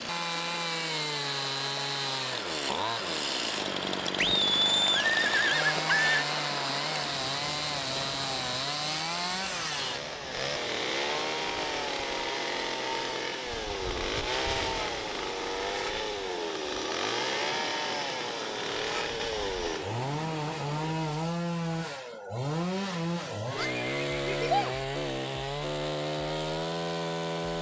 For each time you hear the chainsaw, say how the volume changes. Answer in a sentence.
The chainsaw can be heard from 0.0 to 27.5 s, at a steady volume.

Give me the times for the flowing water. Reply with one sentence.
The flowing water can be heard from 0.0 to 21.1 s.